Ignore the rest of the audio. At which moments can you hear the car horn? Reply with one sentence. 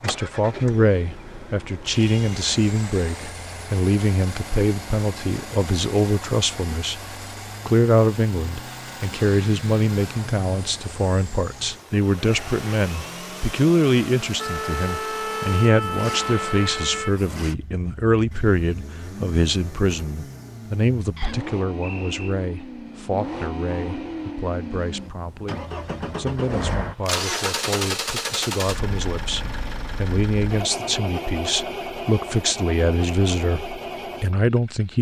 You can't hear the car horn here.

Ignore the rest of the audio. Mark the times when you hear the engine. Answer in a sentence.
You can hear the engine from 0.0 to 34.9 s.